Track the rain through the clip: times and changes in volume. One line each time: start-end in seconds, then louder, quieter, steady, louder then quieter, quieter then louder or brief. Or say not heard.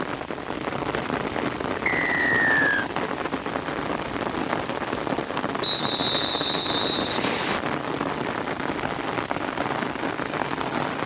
0.0-11.0 steady.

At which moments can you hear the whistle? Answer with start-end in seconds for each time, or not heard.
1.9-2.9, 5.6-7.6.